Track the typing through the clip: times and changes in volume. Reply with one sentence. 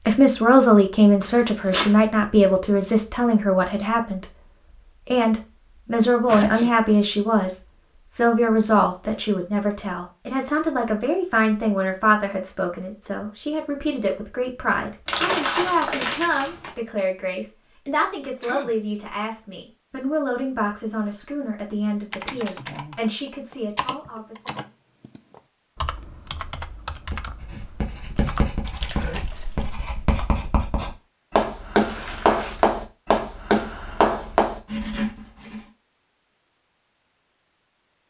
You can hear the typing from 21.1 to 29.8 s, at a steady volume.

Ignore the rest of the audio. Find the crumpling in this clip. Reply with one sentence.
The crumpling can be heard from 1.2 to 2.0 s, from 15.1 to 16.7 s and from 31.9 to 32.6 s.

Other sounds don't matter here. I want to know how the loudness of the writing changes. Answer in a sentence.
The loudness of the writing goes up.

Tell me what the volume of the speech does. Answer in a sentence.
The volume of the speech goes down.